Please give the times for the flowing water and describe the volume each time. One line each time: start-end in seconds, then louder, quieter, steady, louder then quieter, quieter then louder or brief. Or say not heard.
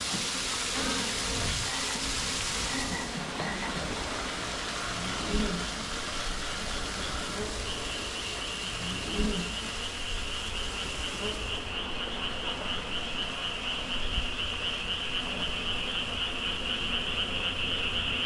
0.0-18.2 quieter.